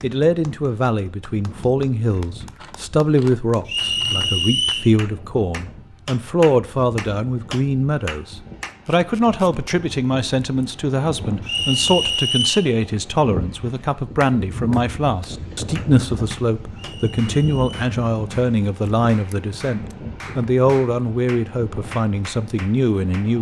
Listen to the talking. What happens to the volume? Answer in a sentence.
The volume of the talking stays about the same.